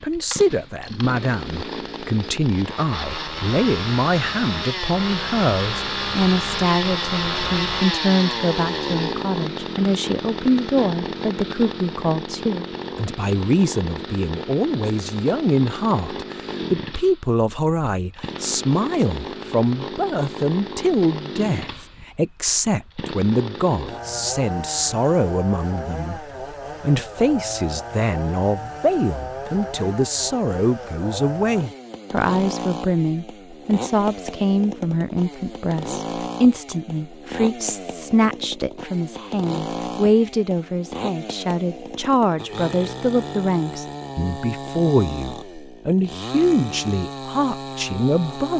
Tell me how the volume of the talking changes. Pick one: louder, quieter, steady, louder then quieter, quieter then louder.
steady.